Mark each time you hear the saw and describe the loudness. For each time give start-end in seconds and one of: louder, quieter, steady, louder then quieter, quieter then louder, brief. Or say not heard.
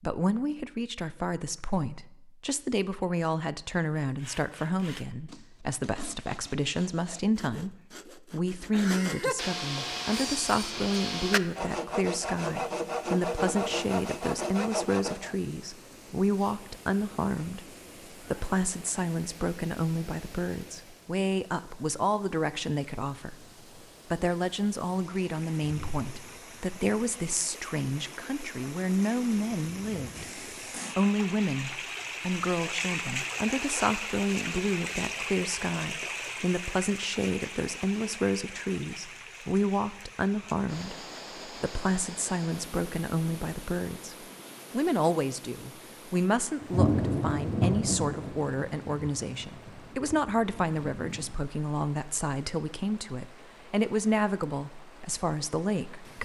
4.0-15.3 louder.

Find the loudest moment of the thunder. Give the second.
47 s.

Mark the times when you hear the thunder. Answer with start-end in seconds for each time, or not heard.
46.6-51.3.